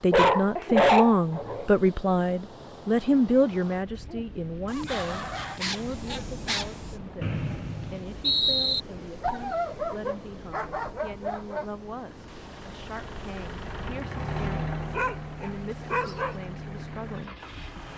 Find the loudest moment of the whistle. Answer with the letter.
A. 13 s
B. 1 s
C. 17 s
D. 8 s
D.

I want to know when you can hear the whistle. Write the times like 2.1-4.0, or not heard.
7.2-8.8.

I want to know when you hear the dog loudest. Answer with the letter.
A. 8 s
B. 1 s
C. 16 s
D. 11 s
B.